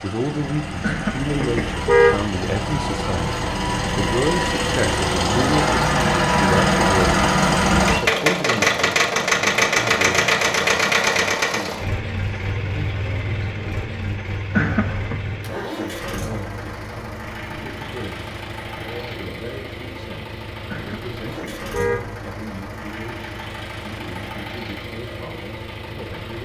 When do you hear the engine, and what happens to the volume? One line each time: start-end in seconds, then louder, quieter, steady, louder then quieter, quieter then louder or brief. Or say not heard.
0.0-26.4 louder then quieter.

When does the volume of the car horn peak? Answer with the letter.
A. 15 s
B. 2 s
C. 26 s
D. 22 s
B.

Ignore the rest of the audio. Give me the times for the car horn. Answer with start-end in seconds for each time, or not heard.
0.8-2.2, 14.5-15.2, 20.7-22.1.